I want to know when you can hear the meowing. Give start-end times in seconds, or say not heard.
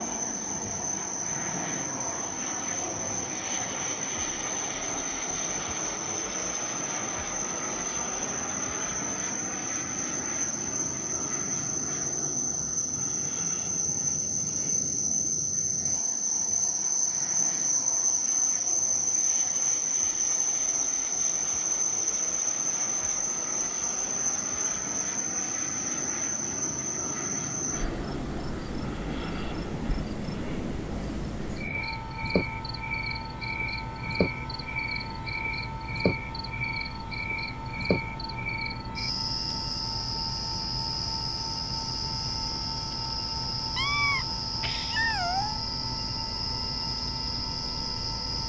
43.8-45.6.